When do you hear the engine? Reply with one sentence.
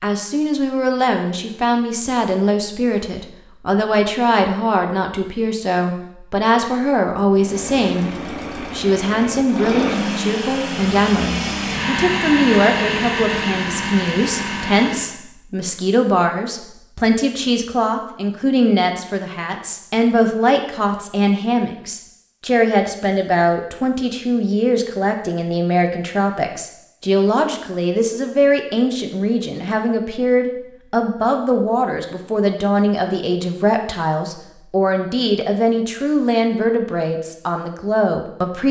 You can hear the engine from 7.3 to 15.2 s.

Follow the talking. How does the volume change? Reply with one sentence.
The loudness of the talking stays about the same.